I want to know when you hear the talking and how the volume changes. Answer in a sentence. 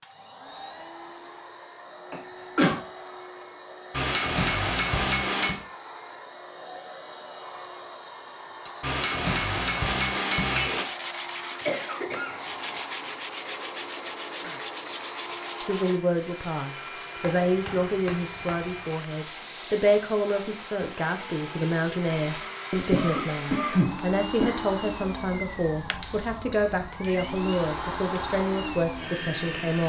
The talking can be heard from 15.6 to 29.8 s, at a steady volume.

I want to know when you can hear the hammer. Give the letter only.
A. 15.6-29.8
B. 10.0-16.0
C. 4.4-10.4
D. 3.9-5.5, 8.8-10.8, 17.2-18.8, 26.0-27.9
D.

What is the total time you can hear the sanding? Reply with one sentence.
The sanding can be heard for 6 seconds in total.